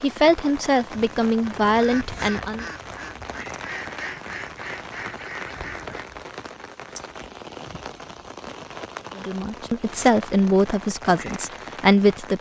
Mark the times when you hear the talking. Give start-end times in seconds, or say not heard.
0.0-2.6, 9.2-12.3.